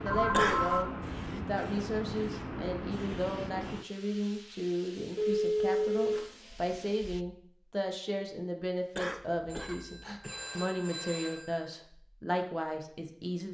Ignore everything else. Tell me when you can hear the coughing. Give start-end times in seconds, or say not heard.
0.3-0.8, 8.9-10.4.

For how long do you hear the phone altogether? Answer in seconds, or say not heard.
5 s.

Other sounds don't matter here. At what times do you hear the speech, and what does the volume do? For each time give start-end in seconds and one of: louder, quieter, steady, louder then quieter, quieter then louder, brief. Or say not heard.
0.0-13.4 steady.